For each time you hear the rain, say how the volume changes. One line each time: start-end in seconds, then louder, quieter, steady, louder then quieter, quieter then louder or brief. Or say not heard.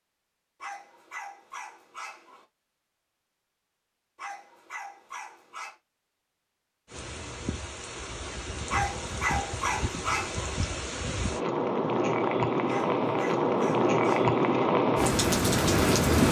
6.8-16.2 louder.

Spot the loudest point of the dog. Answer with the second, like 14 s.
9 s.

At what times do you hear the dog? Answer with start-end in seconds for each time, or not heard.
0.6-2.5, 4.2-5.8, 8.7-10.4, 12.7-14.3.